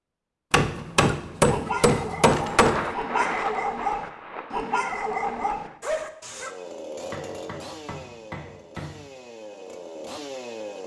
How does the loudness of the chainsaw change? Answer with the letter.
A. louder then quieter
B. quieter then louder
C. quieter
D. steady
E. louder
B.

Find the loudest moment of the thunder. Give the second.
3 s.